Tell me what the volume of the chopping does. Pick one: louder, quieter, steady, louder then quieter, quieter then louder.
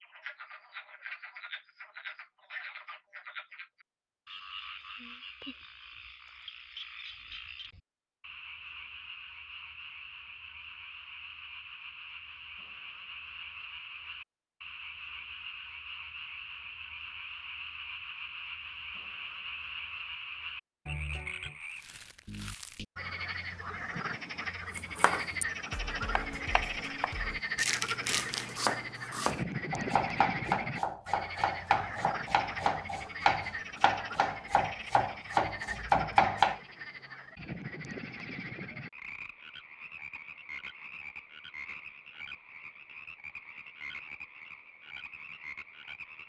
louder.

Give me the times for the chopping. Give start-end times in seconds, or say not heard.
24.8-36.6.